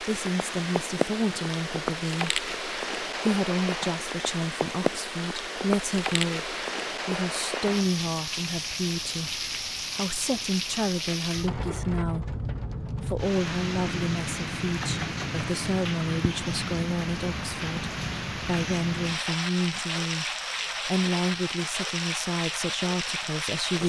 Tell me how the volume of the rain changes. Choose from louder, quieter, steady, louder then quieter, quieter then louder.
steady.